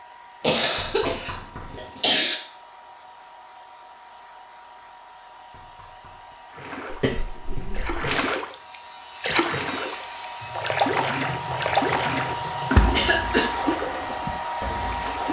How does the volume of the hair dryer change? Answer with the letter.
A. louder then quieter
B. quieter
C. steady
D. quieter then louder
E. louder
E.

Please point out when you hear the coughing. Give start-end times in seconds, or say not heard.
0.4-2.4, 6.9-8.0, 12.9-13.5.